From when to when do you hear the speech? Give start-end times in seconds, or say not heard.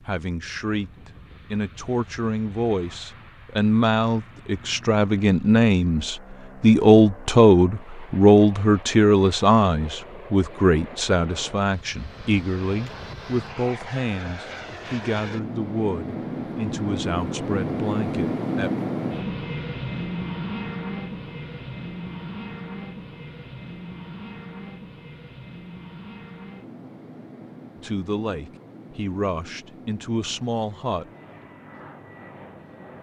0.0-18.7, 27.8-31.1.